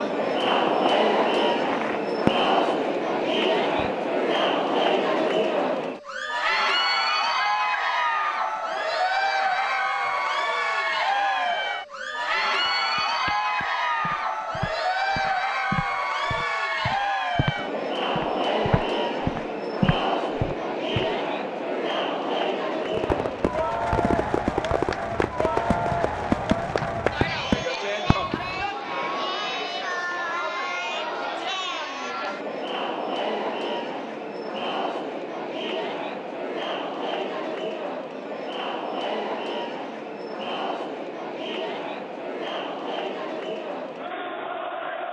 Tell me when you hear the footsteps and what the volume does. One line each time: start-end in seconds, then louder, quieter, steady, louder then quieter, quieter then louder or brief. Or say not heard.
12.7-21.1 louder.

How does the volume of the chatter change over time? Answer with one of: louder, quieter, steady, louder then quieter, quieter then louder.
quieter.